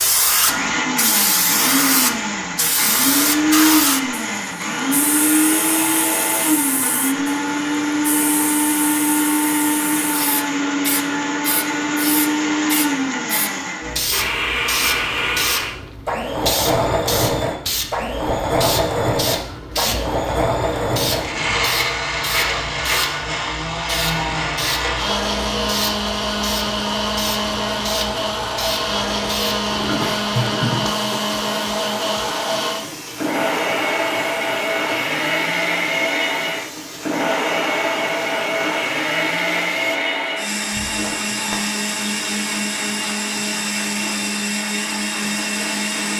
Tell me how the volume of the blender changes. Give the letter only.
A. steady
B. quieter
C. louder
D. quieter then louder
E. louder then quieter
A.